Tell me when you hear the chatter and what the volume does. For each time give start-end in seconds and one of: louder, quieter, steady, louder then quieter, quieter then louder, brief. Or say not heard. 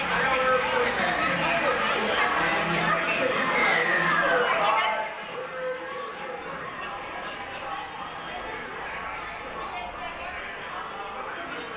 0.0-11.7 quieter.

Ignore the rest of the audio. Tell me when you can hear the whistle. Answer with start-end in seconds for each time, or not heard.
3.5-4.5.